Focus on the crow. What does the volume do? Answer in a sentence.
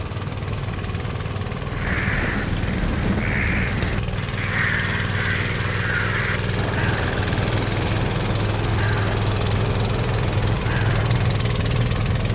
The volume of the crow goes down.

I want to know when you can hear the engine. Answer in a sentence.
You can hear the engine from 0.0 to 12.3 s.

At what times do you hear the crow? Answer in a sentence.
The crow can be heard from 1.6 to 11.2 s.